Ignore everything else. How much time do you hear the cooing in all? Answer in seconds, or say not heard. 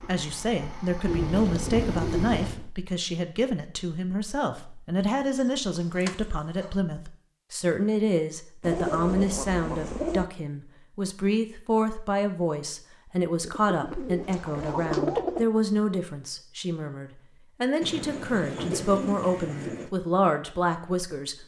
9 s.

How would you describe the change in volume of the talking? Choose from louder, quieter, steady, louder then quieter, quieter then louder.
steady.